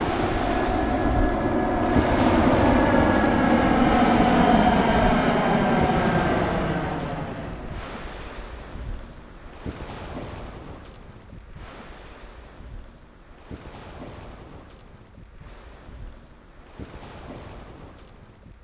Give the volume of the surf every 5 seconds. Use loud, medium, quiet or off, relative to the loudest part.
loud, medium, quiet, quiet.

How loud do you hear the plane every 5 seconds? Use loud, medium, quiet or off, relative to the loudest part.
loud, loud, off, off.